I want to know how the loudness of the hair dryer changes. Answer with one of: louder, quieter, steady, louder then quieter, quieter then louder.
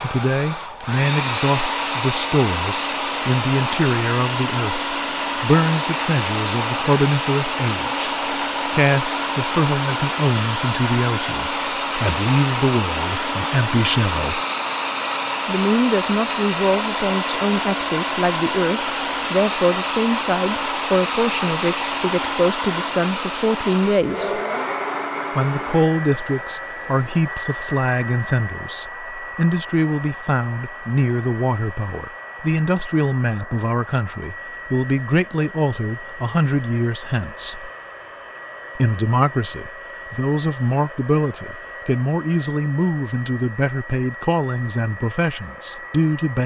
quieter.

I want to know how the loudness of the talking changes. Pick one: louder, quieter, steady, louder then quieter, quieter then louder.
steady.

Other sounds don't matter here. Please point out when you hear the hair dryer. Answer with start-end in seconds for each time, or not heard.
0.0-46.4.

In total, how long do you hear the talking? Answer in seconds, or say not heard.
43 s.